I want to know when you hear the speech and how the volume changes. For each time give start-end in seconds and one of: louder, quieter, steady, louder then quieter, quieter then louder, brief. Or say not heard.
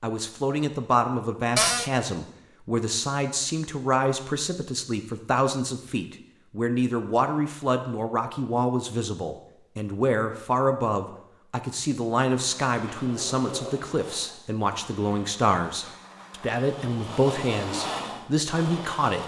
0.0-19.2 steady.